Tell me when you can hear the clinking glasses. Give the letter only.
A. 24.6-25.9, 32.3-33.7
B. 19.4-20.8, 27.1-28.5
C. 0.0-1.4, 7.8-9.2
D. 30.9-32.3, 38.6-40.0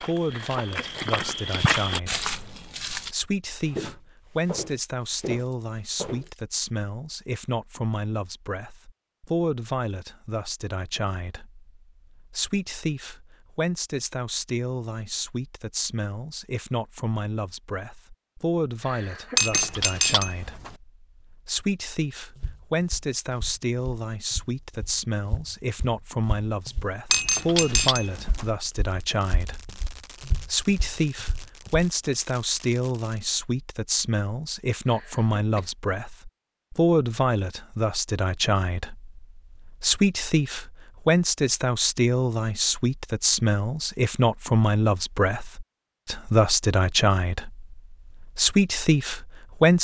B.